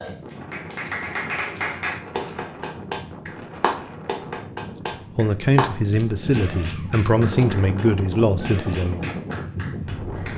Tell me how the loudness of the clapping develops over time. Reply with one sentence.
The volume of the clapping goes down.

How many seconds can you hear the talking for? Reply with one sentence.
You can hear the talking for 4 seconds altogether.